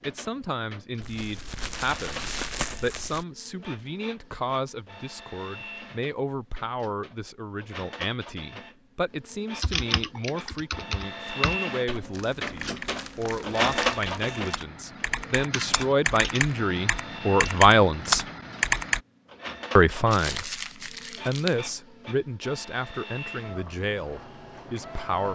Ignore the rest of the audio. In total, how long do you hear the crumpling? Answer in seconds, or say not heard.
6 s.